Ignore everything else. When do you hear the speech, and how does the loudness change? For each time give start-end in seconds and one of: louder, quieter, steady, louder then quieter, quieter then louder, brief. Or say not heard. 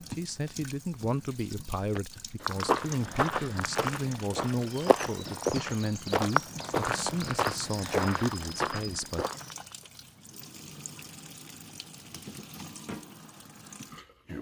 0.1-9.2 steady.